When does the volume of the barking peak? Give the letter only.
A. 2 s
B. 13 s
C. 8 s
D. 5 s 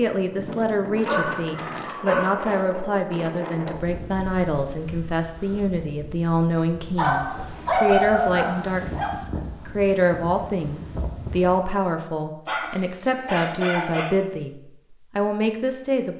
C.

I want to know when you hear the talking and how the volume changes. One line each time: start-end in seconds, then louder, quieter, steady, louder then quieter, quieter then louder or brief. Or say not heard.
0.0-14.6 steady
15.2-16.1 brief.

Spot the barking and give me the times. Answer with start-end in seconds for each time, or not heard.
1.0-2.5, 7.0-9.2, 12.4-14.1.